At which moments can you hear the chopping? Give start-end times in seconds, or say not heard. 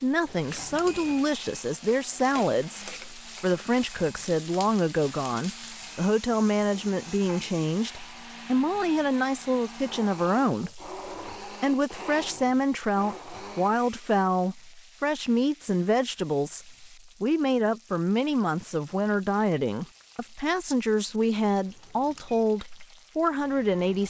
not heard.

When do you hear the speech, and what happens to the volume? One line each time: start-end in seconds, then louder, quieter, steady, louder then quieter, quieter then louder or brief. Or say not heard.
0.0-24.0 steady.